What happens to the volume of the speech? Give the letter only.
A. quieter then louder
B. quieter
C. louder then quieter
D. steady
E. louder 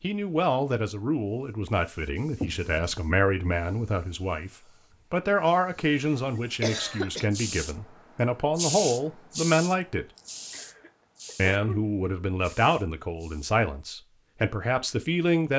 D.